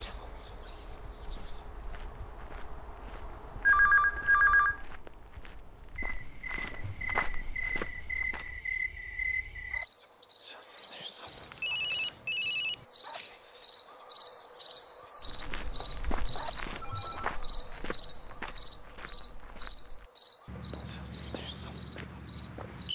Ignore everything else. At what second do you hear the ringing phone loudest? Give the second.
4 s.